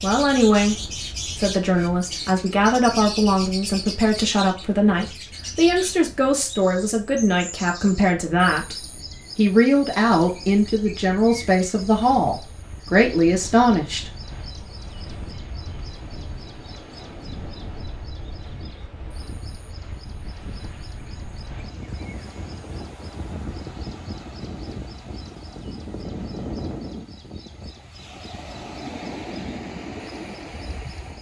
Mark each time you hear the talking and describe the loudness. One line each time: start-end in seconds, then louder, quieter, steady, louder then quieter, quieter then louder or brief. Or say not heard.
0.0-0.8 brief
1.4-14.1 steady.